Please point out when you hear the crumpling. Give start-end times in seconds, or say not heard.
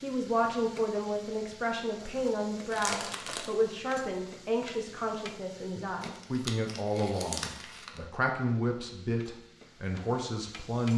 2.7-3.5, 6.0-8.0.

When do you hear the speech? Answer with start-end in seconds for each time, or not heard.
0.0-10.9.